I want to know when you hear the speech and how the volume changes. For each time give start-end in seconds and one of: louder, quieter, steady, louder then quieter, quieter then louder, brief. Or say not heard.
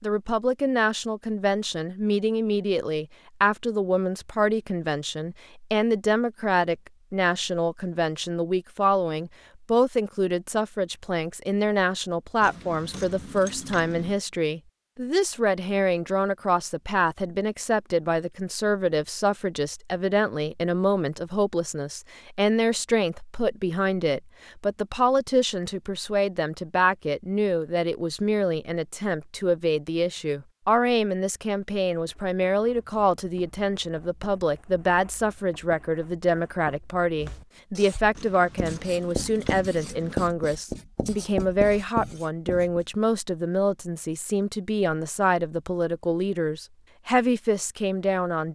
0.0-48.5 steady.